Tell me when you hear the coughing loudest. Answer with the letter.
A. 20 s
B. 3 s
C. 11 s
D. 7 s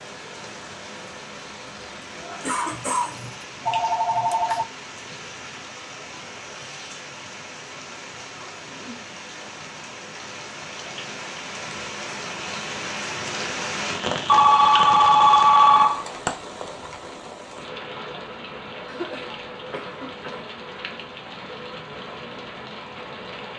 B.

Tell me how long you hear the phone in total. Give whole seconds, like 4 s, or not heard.
4 s.